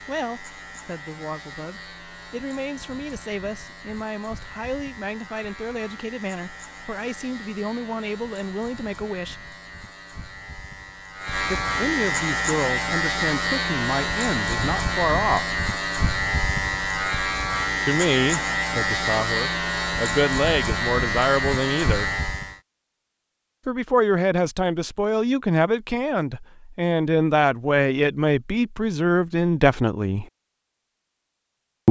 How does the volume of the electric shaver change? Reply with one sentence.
The loudness of the electric shaver goes up.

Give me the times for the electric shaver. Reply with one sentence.
The electric shaver can be heard from 0.0 to 22.6 s.